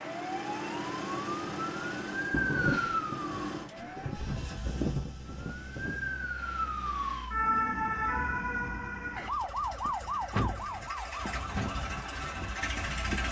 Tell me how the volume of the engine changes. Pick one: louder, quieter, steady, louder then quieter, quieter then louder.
quieter then louder.